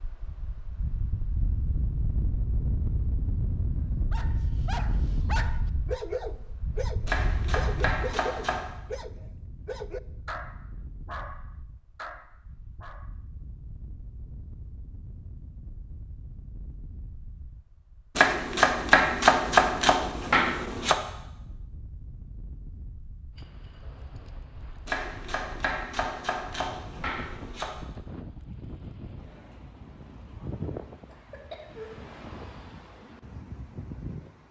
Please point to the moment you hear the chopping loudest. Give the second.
19 s.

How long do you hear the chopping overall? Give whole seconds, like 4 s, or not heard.
7 s.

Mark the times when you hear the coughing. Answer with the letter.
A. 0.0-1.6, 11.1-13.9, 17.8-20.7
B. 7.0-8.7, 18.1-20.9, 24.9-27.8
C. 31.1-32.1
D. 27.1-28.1
C.